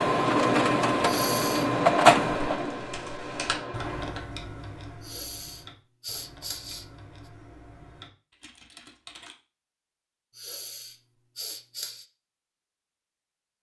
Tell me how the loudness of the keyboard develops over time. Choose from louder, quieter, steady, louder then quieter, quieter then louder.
quieter.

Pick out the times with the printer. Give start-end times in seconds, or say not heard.
0.0-4.1.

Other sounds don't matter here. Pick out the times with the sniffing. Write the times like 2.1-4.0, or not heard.
1.0-1.7, 5.0-6.8, 10.3-12.1.